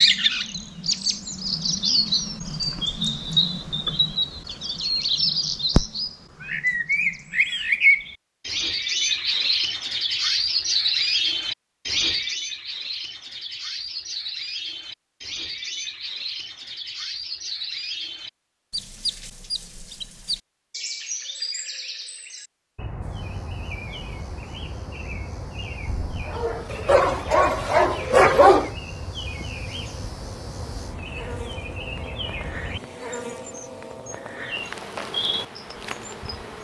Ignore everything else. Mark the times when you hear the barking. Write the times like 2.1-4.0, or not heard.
25.9-28.7.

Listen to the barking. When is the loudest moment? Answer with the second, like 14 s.
28 s.